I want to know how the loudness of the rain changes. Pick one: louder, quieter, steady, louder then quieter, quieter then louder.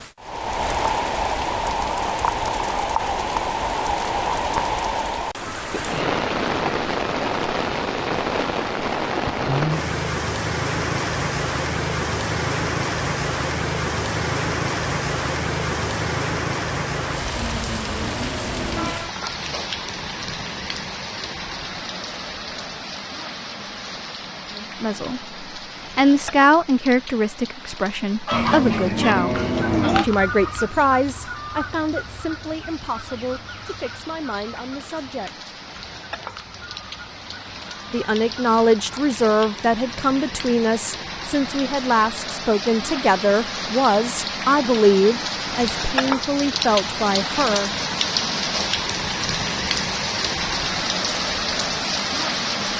quieter then louder.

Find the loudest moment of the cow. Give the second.
30 s.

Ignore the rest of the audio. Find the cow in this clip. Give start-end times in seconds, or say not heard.
17.4-18.9, 28.3-30.1.